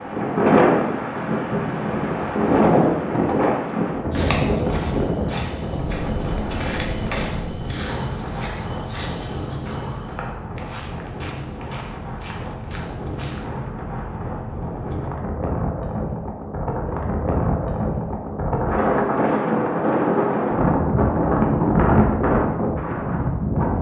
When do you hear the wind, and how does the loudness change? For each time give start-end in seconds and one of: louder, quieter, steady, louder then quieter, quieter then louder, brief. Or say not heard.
0.0-23.7 quieter then louder.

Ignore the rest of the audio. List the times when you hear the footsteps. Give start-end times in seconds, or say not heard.
4.1-13.5.